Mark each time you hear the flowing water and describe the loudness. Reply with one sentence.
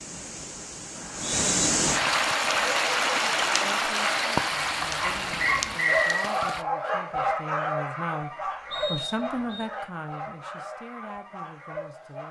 The flowing water can be heard from 0.0 to 6.7 s, getting louder then quieter.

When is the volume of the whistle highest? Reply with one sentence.
The loudest moment of the whistle is at 6 seconds.